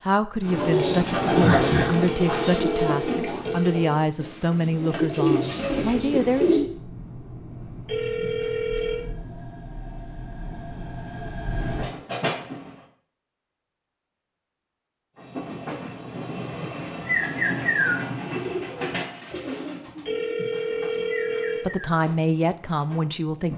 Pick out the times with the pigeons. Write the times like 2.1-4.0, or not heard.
0.4-6.6, 16.1-21.9.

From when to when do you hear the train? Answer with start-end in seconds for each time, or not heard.
5.6-12.8, 15.2-23.5.